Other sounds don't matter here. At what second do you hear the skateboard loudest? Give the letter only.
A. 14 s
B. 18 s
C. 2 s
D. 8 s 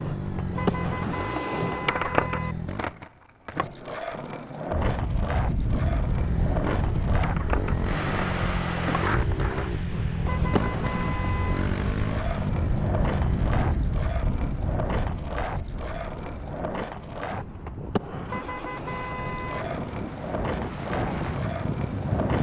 C.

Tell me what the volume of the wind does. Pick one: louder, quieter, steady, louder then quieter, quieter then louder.
quieter then louder.